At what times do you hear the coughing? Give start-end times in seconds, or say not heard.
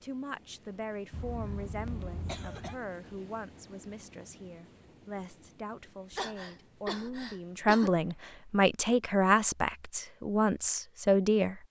1.1-2.8, 6.1-8.1.